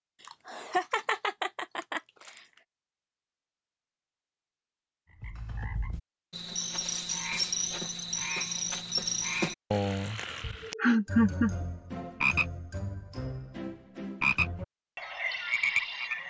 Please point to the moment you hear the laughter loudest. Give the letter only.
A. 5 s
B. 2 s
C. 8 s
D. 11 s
D.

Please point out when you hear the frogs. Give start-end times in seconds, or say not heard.
5.2-16.2.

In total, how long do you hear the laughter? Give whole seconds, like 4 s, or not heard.
3 s.